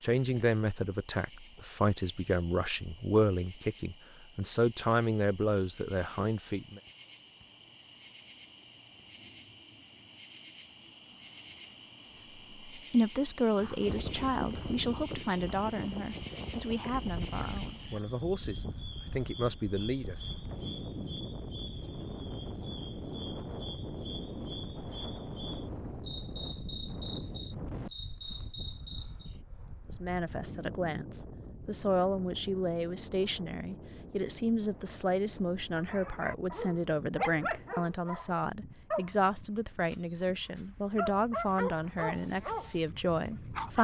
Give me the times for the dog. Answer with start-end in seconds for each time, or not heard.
35.8-43.7.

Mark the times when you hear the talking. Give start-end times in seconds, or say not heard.
0.0-6.8, 12.2-20.2, 29.9-43.7.